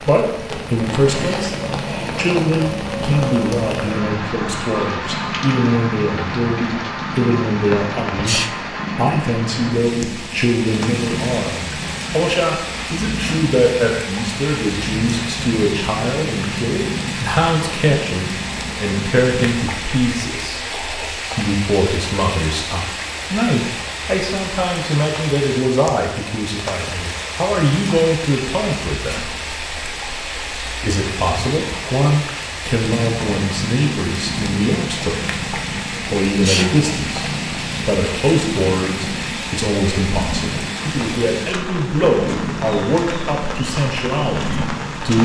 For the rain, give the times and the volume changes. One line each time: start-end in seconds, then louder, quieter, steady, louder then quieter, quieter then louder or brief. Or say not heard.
0.0-45.2 steady.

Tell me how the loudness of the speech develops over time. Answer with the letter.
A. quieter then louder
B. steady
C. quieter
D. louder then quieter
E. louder
B.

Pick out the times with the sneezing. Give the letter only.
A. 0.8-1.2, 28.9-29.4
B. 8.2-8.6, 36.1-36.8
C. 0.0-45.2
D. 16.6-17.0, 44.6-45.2
B.